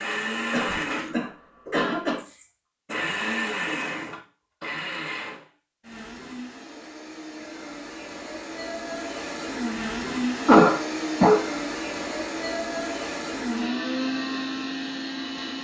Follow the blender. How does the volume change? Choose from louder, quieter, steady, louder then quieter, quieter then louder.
quieter then louder.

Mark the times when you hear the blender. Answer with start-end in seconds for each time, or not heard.
0.0-15.6.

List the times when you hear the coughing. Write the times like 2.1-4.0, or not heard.
0.5-2.2, 10.4-11.4.